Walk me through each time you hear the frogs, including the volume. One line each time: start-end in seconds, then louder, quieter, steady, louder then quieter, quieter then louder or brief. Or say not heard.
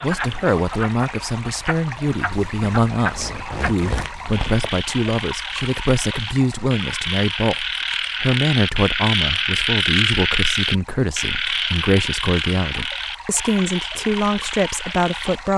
0.0-15.4 louder then quieter.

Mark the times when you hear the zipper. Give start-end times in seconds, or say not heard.
2.3-4.8.